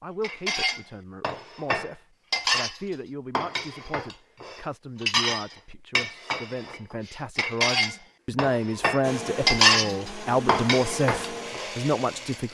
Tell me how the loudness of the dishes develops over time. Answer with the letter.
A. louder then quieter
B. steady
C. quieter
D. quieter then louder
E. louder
D.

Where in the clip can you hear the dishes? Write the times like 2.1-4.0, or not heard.
0.2-11.7.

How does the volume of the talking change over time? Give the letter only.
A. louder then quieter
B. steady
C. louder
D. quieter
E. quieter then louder
C.